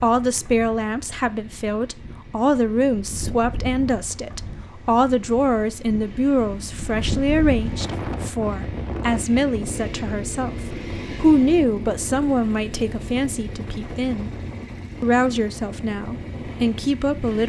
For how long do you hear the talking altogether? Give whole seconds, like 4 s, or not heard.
17 s.